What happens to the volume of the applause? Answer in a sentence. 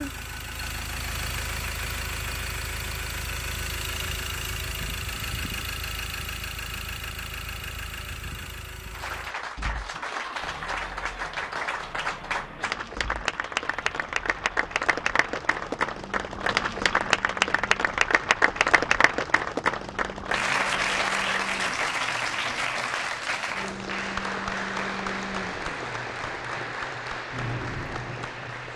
The volume of the applause goes up, then down.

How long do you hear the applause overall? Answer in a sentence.
The applause can be heard for 20 seconds in total.